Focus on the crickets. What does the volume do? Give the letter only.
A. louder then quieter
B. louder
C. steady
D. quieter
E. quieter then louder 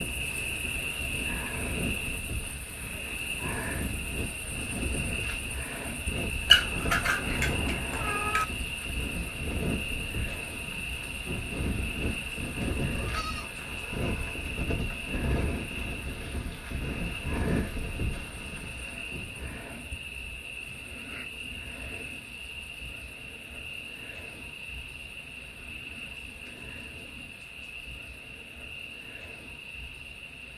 D.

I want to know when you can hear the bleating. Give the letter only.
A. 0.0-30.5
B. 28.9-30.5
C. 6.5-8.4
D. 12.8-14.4
D.